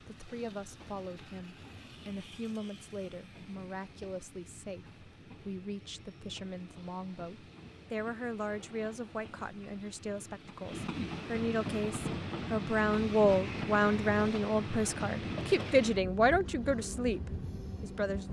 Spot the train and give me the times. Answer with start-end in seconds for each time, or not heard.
0.0-18.2.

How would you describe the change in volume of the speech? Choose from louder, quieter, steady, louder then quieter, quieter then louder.
louder.